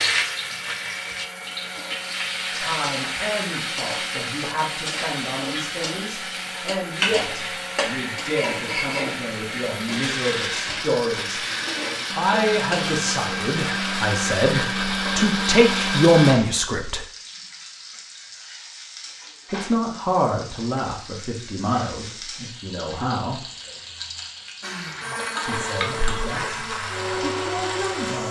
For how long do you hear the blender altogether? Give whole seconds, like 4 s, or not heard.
20 s.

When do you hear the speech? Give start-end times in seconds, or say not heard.
2.5-11.4, 12.2-17.0, 19.5-23.4, 25.4-28.2.